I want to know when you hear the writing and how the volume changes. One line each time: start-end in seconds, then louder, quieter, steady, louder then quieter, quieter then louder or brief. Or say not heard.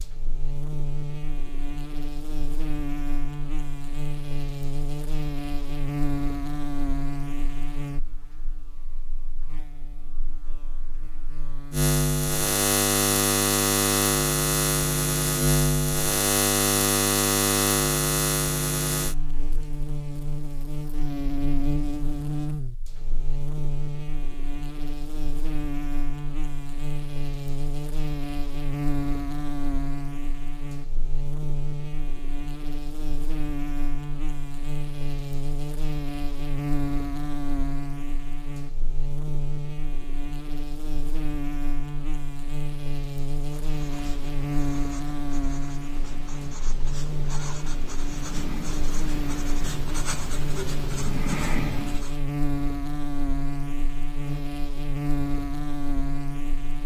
43.4-52.2 louder.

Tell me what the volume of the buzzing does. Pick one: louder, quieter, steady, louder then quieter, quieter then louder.
louder then quieter.